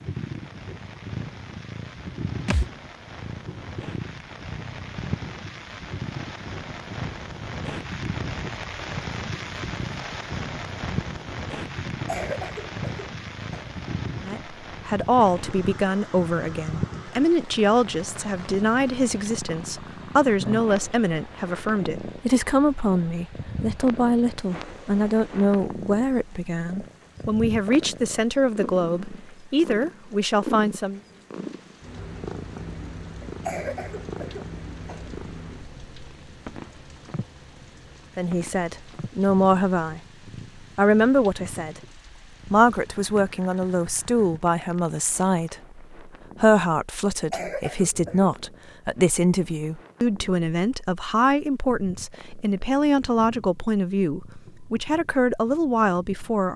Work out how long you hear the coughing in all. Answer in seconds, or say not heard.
5 s.